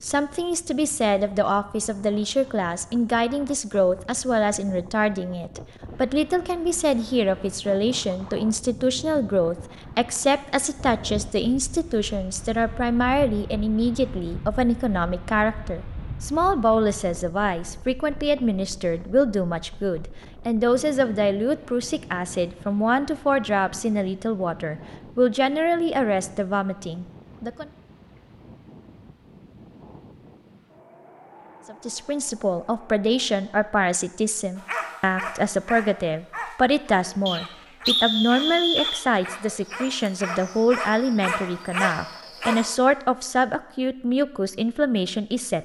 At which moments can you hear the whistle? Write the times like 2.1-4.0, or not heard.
37.2-39.0.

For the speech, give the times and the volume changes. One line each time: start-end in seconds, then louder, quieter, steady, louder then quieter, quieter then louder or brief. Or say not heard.
0.0-27.6 steady
31.6-45.6 steady.